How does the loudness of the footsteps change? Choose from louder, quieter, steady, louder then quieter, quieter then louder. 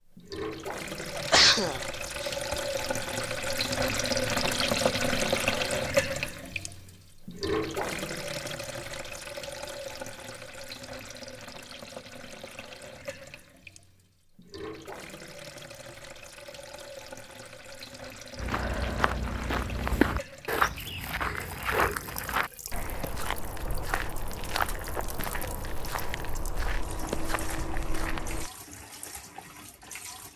quieter.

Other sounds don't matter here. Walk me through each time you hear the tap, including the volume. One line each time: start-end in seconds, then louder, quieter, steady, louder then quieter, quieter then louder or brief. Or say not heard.
0.0-30.3 quieter.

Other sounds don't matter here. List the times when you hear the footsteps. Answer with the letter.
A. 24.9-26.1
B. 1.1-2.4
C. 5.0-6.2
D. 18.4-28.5
D.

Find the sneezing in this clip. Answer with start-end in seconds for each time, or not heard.
1.1-2.4.